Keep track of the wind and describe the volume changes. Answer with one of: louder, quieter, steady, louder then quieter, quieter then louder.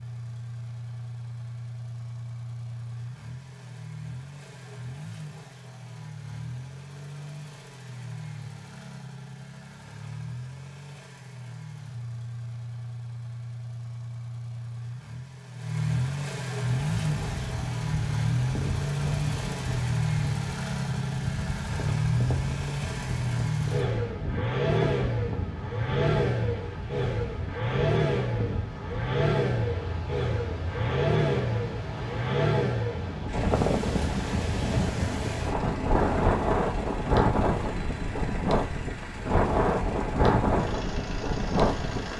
louder.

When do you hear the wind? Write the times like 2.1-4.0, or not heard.
16.9-42.1.